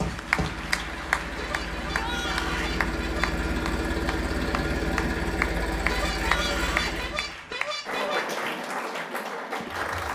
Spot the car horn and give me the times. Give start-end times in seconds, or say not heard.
1.2-3.5, 5.7-8.2.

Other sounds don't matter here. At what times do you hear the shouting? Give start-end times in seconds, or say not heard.
1.9-2.8, 6.2-7.0.